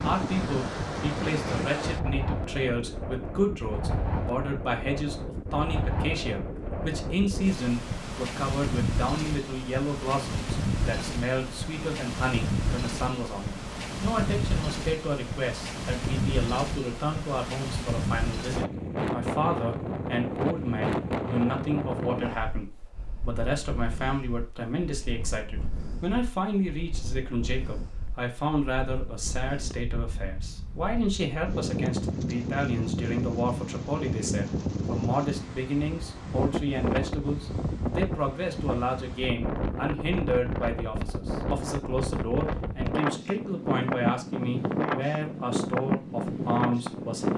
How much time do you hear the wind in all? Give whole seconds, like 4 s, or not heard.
47 s.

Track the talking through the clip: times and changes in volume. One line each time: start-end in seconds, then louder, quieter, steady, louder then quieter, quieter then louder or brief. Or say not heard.
0.0-47.3 steady.